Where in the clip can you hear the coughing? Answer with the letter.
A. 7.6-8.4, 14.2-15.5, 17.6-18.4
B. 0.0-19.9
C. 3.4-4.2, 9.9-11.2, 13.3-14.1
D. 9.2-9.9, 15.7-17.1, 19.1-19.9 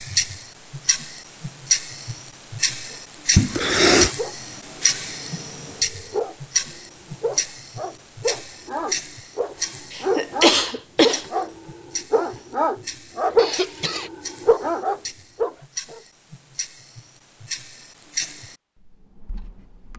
C.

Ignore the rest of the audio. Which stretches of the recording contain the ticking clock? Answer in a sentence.
You can hear the ticking clock from 0.0 to 19.9 s.